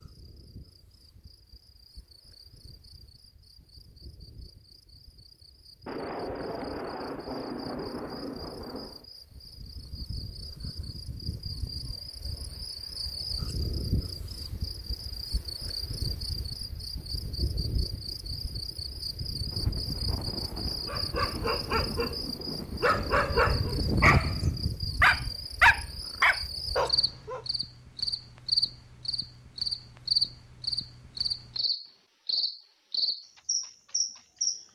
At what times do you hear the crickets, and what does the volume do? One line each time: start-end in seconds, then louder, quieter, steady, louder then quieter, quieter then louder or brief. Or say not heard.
0.0-34.6 louder.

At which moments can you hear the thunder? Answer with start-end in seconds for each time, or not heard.
5.8-9.1, 19.5-23.4.